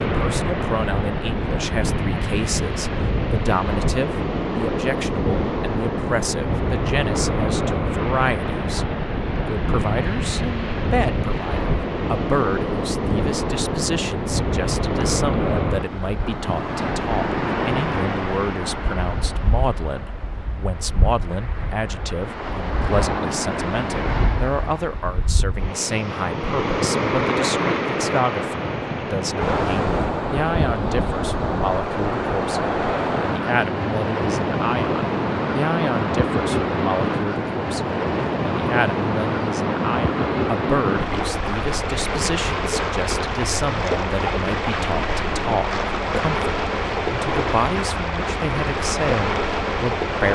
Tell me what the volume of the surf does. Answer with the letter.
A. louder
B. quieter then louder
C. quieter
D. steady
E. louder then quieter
D.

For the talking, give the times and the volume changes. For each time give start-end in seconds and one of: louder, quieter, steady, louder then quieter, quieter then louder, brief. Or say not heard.
0.0-8.8 steady
9.4-50.3 steady.